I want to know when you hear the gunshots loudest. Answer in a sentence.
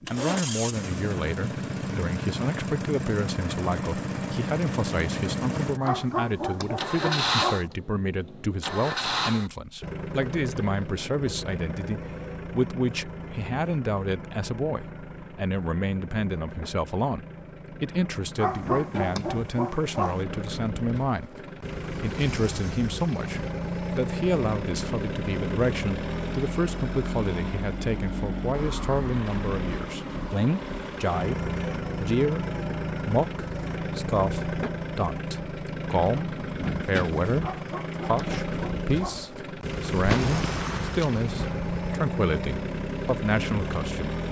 The loudest moment of the gunshots is at 40 seconds.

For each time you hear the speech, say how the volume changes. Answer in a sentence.
The speech can be heard from 0.1 to 44.1 s, at a steady volume.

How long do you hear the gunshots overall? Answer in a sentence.
The gunshots can be heard for 2 seconds in total.